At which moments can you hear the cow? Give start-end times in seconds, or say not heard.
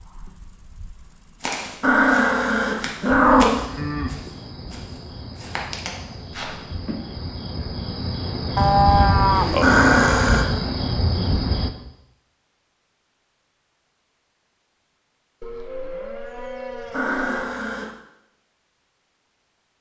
3.5-4.2, 8.6-10.4, 15.4-17.4.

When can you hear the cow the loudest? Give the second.
9 s.